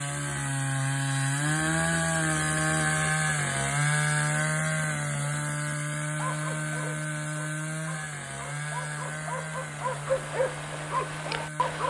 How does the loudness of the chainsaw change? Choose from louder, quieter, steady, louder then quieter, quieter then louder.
quieter.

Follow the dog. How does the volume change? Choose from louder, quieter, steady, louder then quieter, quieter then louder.
louder.